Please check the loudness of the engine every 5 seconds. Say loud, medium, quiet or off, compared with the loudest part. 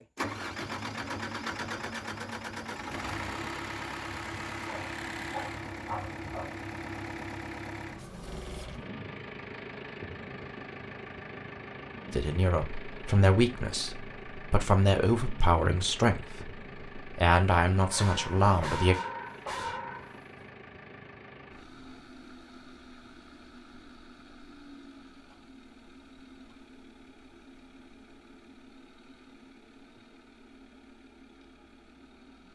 loud, loud, medium, medium, quiet, quiet, quiet.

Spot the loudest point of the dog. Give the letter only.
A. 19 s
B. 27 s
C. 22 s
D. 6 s
A.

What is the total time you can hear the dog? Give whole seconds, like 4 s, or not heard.
5 s.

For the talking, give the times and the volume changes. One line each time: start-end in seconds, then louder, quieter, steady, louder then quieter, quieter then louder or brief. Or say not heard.
12.1-18.9 steady.